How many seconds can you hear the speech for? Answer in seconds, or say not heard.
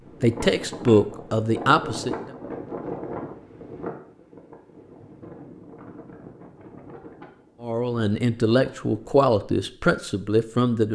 5 s.